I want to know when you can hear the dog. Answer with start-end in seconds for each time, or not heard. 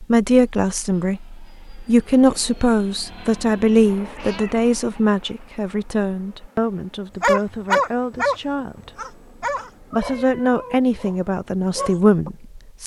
7.2-8.3, 8.9-12.3.